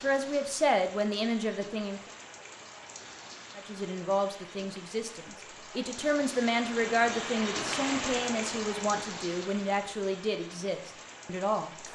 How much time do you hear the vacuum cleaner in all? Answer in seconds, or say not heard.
not heard.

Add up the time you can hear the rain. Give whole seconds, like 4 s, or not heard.
12 s.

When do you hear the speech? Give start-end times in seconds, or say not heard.
0.0-2.1, 3.5-11.7.